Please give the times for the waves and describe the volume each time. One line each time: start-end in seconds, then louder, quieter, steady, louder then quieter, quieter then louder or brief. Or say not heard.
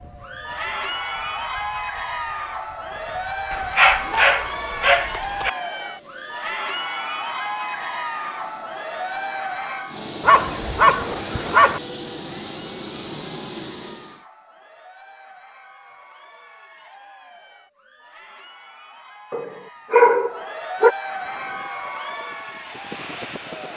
not heard.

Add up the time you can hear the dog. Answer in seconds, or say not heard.
5 s.